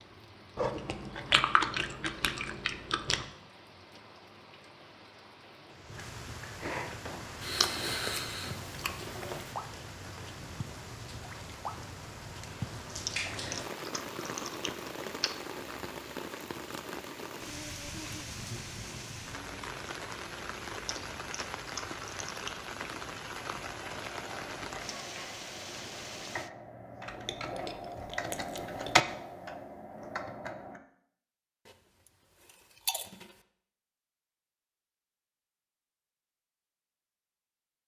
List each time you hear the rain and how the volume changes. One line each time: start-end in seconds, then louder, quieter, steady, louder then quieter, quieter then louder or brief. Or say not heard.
0.0-26.5 louder.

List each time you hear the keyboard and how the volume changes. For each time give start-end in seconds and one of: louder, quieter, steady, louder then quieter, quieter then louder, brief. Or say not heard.
23.4-30.8 louder then quieter.